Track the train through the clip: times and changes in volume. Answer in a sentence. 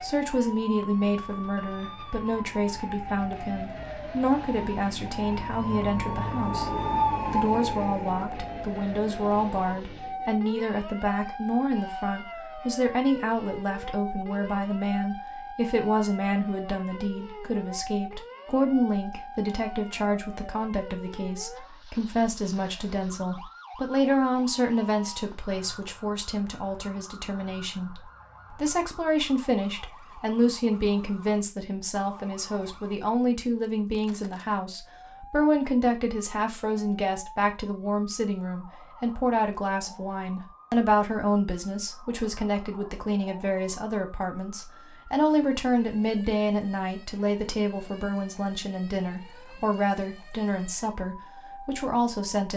You can hear the train from 0.0 to 10.4 s, getting louder then quieter.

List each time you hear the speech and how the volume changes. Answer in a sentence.
You can hear the speech from 0.0 to 52.5 s, at a steady volume.